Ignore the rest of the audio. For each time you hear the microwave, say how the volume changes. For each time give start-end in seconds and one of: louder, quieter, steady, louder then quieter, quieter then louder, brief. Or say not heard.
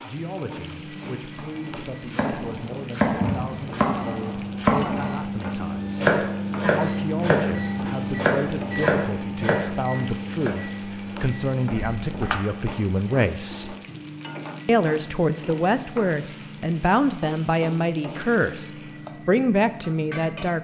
0.0-20.5 louder then quieter.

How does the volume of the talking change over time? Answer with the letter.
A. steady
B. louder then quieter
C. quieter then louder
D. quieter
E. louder
E.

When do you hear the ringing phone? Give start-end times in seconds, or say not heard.
11.8-12.4.